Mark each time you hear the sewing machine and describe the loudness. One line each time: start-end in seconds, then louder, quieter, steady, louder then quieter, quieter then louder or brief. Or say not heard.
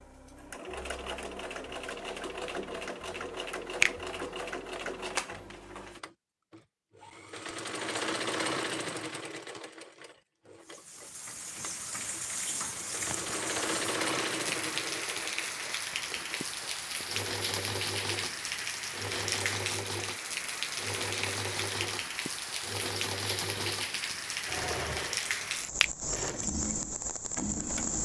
0.0-28.0 steady.